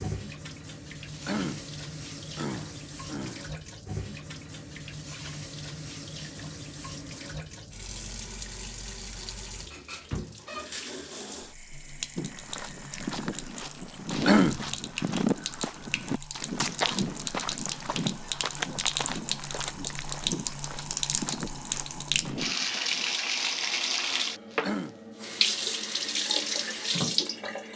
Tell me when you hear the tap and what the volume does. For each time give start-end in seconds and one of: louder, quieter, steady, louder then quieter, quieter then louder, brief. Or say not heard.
0.0-27.7 louder.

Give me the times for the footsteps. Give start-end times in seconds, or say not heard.
12.2-23.2.